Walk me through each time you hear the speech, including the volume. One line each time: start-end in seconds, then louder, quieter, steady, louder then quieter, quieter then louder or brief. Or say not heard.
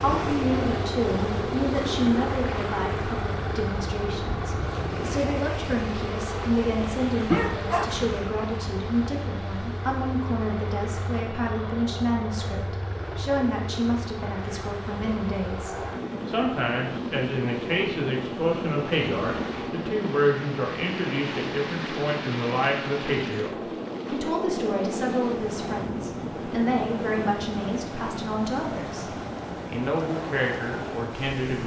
0.0-31.6 steady.